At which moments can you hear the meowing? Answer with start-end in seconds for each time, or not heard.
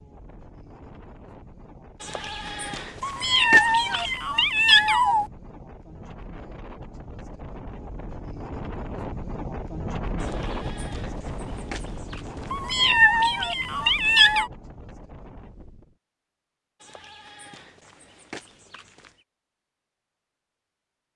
3.0-5.2, 12.5-14.5.